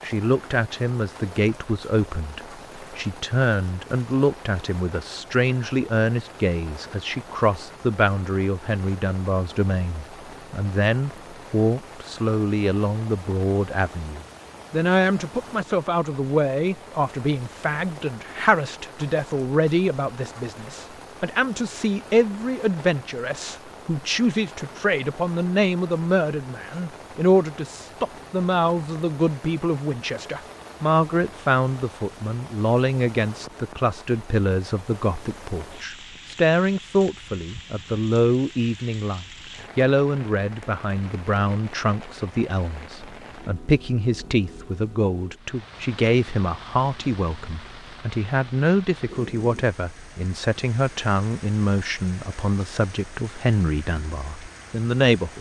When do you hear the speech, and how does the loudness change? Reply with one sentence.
The speech can be heard from 0.0 to 55.3 s, at a steady volume.